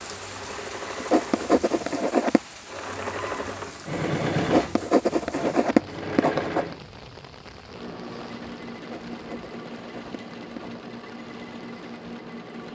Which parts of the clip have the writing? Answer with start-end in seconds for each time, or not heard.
1.0-2.4, 4.4-6.7, 8.8-10.8.